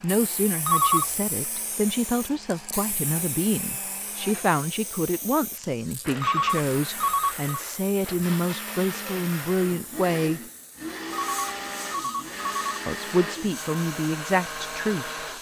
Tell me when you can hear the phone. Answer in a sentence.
The phone can be heard from 0.7 to 1.1 s, from 6.2 to 7.5 s and from 11.1 to 12.8 s.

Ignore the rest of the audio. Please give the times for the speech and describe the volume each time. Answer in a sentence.
You can hear the speech from 0.0 to 10.4 s, at a steady volume; and briefly from 12.8 to 15.2 s.